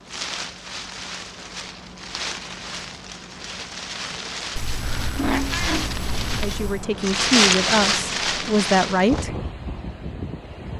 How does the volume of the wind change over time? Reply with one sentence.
The volume of the wind goes up, then down.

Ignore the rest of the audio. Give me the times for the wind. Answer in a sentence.
The wind can be heard from 0.0 to 10.7 s.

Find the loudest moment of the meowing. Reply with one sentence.
The loudest moment of the meowing is at 5 seconds.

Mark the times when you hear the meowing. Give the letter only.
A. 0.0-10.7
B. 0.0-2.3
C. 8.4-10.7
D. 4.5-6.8
D.